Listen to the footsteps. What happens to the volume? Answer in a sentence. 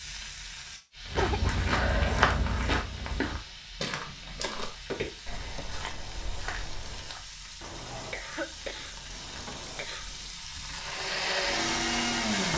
The volume of the footsteps goes down.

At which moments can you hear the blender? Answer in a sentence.
The blender can be heard from 10.8 to 12.5 s.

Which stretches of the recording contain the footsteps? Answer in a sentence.
The footsteps can be heard from 1.1 to 7.2 s.